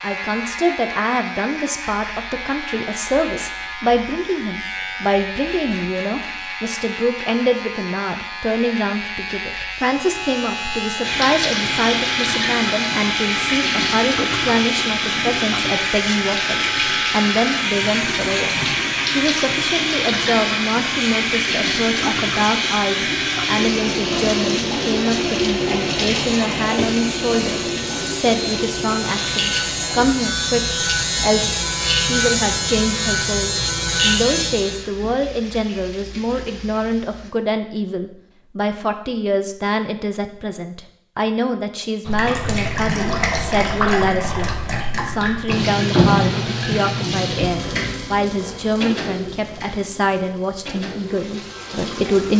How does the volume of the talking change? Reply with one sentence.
The volume of the talking stays about the same.